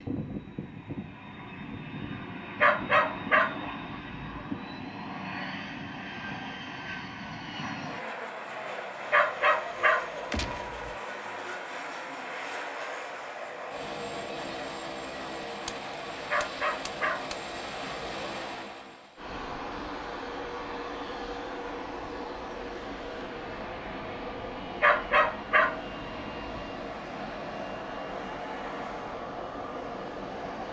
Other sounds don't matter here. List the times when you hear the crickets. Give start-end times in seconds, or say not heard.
not heard.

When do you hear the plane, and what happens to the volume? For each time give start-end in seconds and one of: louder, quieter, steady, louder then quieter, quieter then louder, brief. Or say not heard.
0.0-30.6 steady.